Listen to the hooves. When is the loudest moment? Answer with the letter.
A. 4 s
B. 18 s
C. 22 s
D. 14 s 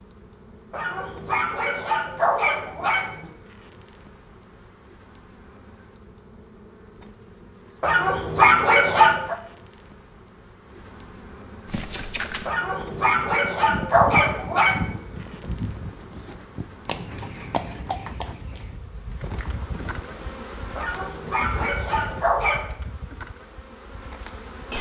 D.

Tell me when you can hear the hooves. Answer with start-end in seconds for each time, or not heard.
11.7-22.3.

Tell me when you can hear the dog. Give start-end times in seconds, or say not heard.
0.7-3.3, 7.8-9.3, 12.4-14.9, 20.8-22.7.